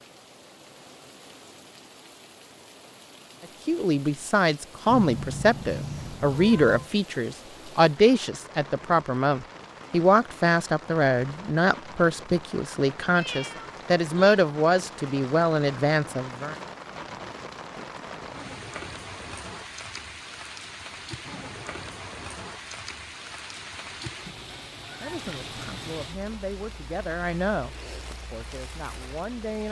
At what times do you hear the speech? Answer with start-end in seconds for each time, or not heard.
3.6-16.6, 25.0-29.6.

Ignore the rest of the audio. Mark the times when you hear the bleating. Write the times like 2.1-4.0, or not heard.
not heard.